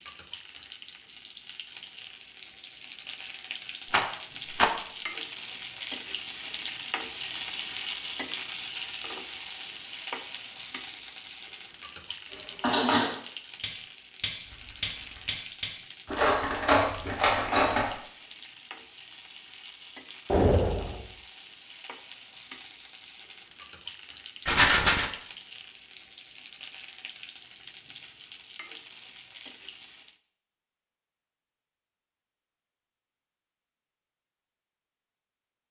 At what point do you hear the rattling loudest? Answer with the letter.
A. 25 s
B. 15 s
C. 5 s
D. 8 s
A.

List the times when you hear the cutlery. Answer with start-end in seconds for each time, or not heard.
12.3-17.9.